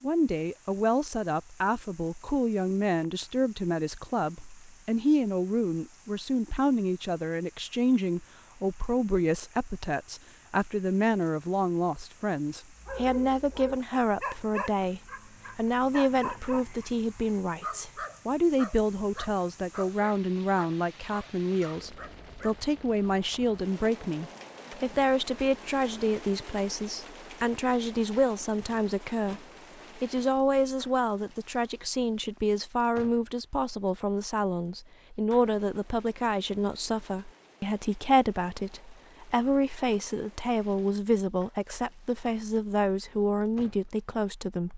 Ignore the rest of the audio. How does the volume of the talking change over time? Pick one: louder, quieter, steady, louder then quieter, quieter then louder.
steady.